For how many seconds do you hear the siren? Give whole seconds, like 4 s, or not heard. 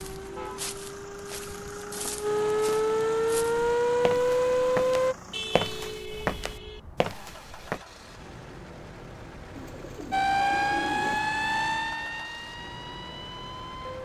9 s.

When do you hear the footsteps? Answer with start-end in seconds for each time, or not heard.
0.0-7.8.